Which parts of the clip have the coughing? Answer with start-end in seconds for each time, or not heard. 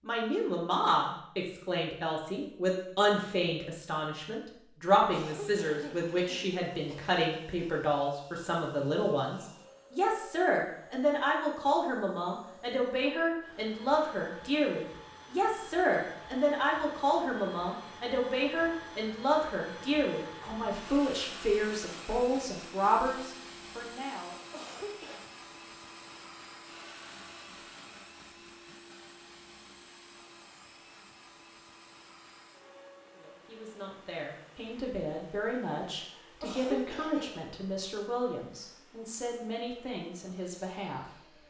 5.0-7.2, 24.5-25.2, 36.4-37.5.